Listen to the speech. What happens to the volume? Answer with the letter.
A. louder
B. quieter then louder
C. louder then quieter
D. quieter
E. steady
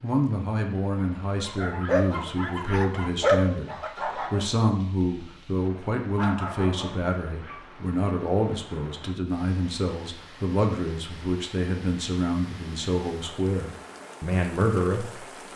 E.